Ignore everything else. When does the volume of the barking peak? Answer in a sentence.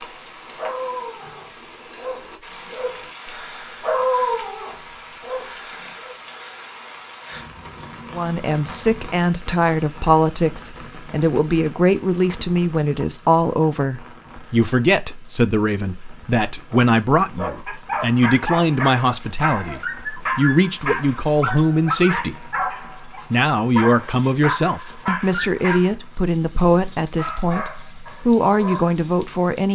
The loudest moment of the barking is at 4 seconds.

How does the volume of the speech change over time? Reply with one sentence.
The loudness of the speech stays about the same.